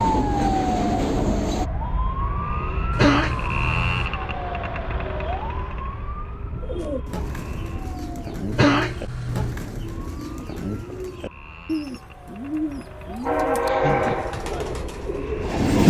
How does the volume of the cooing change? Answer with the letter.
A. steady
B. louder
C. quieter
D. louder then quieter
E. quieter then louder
A.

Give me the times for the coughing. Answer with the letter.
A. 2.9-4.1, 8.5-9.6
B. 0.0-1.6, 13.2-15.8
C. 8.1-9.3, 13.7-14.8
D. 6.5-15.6
A.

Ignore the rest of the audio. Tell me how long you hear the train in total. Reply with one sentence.
The train can be heard for 4 seconds in total.